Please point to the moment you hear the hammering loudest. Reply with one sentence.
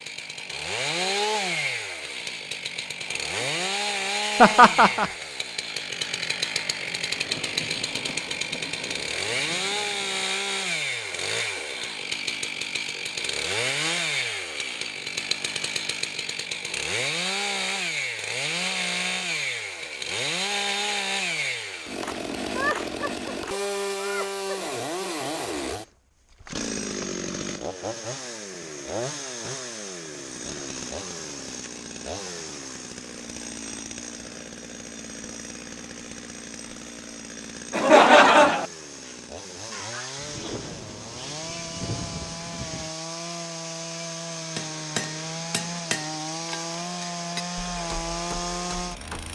The loudest moment of the hammering is at 45 seconds.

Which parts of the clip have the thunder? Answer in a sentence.
The thunder can be heard from 7.1 to 10.2 s and from 40.1 to 43.0 s.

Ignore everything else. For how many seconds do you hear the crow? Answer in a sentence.
You can't hear the crow here.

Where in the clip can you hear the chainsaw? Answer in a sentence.
The chainsaw can be heard from 0.0 to 49.3 s.